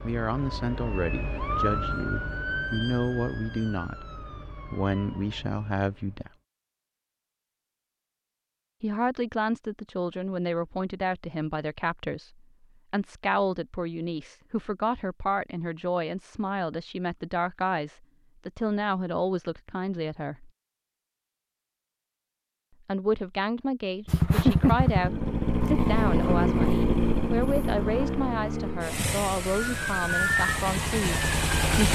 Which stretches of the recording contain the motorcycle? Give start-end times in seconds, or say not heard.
24.1-31.9.